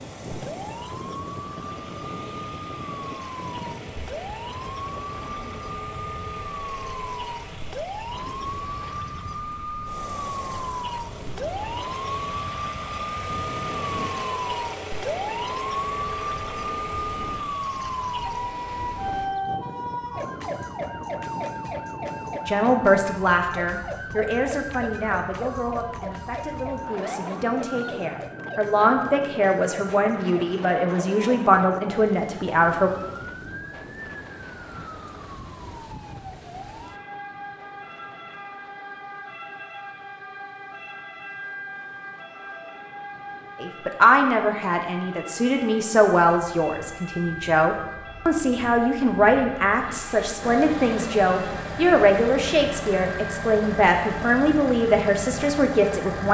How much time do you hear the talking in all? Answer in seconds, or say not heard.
23 s.